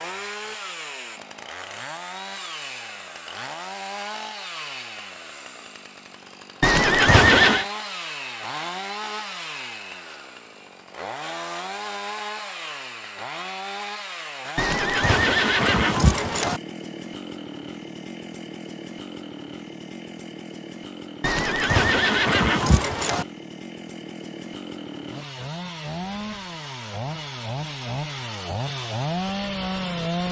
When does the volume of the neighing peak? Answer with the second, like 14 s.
7 s.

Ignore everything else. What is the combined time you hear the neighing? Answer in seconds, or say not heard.
5 s.